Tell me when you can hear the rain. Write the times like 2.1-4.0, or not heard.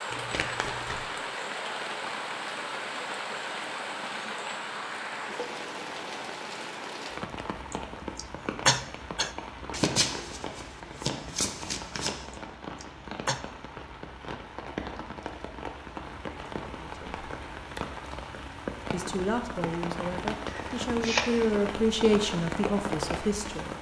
0.0-23.7.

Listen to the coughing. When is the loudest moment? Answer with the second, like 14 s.
9 s.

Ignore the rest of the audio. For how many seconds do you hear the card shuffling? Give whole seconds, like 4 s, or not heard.
4 s.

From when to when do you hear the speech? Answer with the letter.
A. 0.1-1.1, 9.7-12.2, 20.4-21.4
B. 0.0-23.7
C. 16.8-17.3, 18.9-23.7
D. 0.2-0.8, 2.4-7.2
C.